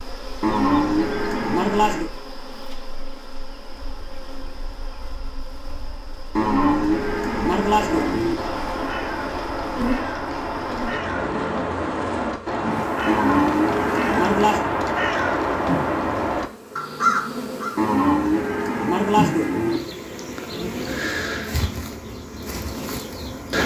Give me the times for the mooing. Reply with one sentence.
You can hear the mooing from 0.4 to 2.1 s, from 6.3 to 8.3 s, from 13.1 to 14.7 s and from 17.8 to 19.8 s.